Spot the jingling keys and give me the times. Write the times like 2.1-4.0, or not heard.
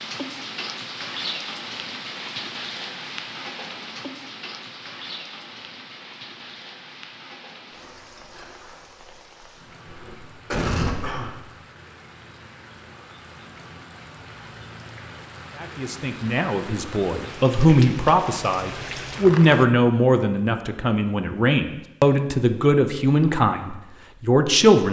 not heard.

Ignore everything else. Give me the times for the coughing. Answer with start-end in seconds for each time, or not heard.
9.8-11.3.